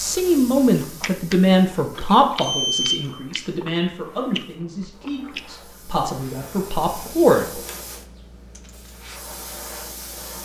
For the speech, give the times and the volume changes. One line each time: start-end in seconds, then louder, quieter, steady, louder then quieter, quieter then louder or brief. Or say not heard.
0.0-7.6 quieter then louder.